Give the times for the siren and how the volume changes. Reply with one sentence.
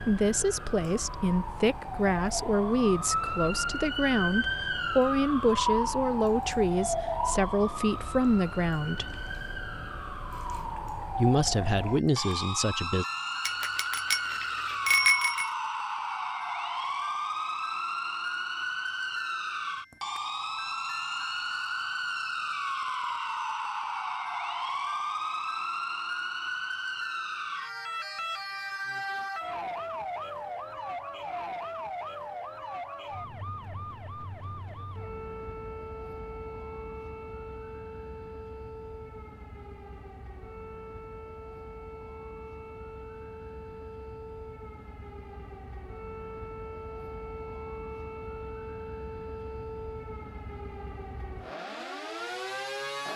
The siren can be heard from 0.0 to 53.1 s, getting quieter.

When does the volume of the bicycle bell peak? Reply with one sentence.
The loudest moment of the bicycle bell is at 15 seconds.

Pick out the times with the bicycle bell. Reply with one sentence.
You can hear the bicycle bell from 13.4 to 15.5 s.